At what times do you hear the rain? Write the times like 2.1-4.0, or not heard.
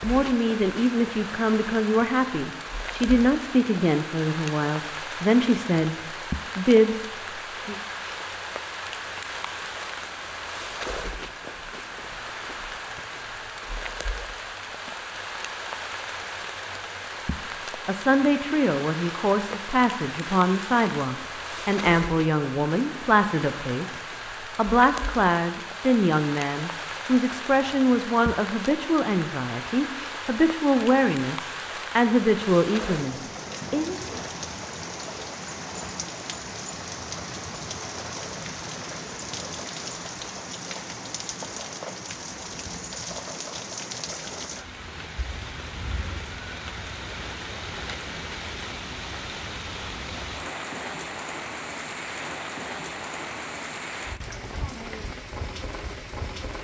0.0-56.6.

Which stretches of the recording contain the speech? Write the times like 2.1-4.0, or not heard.
0.0-7.8, 17.9-34.0.